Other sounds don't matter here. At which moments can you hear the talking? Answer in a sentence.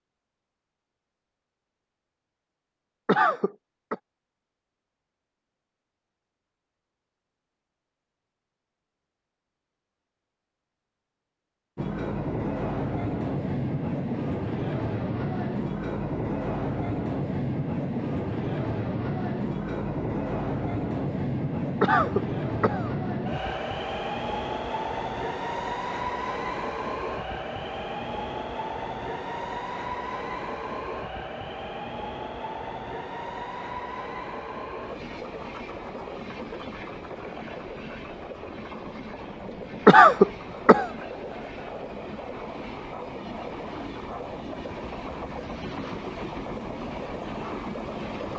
The talking can't be heard in this clip.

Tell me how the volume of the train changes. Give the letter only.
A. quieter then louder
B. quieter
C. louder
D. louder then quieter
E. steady
B.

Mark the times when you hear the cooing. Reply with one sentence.
You can't hear the cooing here.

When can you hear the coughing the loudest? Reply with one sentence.
The loudest moment of the coughing is at 40 seconds.